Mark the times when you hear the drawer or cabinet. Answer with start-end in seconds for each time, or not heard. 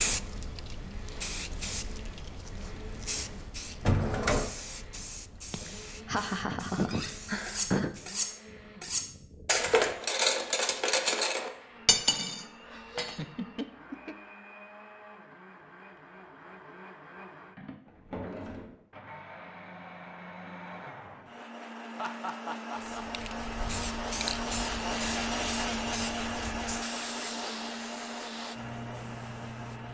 3.8-4.5, 17.9-18.8.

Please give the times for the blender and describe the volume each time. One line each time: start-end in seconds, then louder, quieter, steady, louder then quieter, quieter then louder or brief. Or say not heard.
0.0-29.8 louder.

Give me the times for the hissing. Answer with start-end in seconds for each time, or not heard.
0.0-8.2, 22.8-29.8.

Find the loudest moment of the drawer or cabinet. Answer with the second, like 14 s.
4 s.